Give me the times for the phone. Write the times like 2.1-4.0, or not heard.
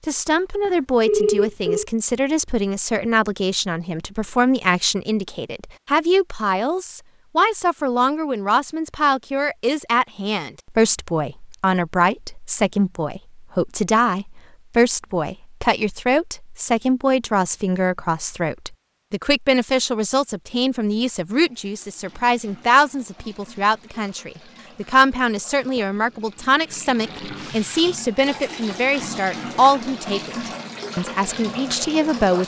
0.7-1.9.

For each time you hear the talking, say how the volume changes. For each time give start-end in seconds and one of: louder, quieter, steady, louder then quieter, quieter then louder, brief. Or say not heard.
0.1-32.4 steady.